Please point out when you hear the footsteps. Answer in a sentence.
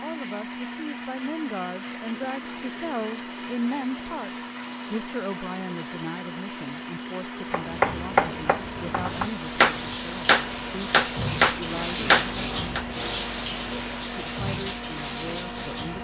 You can't hear the footsteps here.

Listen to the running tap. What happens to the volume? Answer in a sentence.
The loudness of the running tap goes up.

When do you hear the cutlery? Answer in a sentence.
You can't hear the cutlery here.